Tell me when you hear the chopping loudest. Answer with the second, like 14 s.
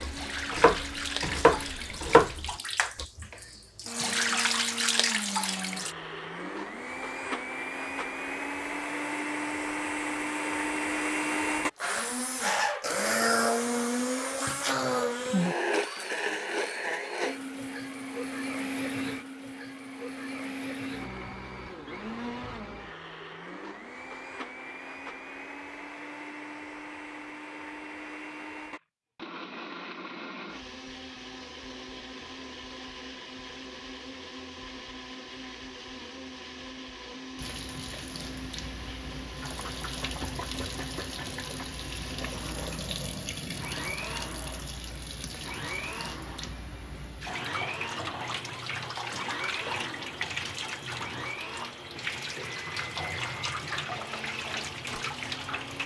2 s.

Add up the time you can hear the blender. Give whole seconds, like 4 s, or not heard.
56 s.